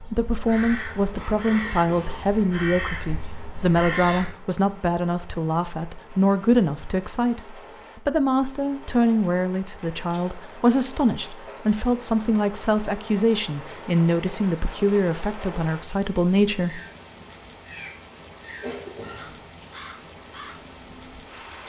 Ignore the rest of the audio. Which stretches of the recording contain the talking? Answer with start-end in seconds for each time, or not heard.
0.0-16.8.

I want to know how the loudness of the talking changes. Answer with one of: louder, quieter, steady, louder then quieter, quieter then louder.
steady.